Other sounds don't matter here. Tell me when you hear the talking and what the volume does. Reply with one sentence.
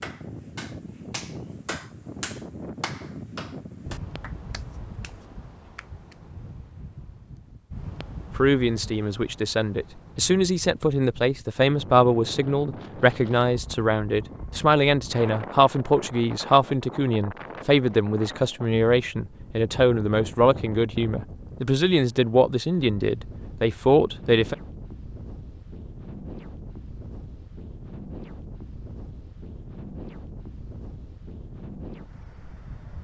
The talking can be heard from 8.3 to 24.6 s, at a steady volume.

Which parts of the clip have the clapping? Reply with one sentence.
The clapping can be heard from 0.0 to 6.2 s.